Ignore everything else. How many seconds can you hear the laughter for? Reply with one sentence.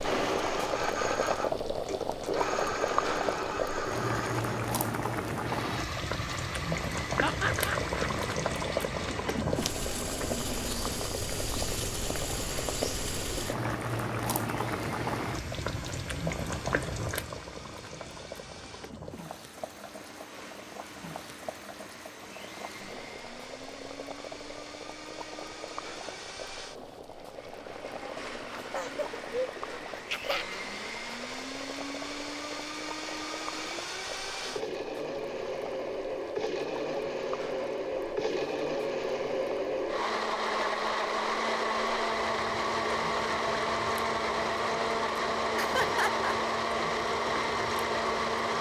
The laughter can be heard for 4 seconds in total.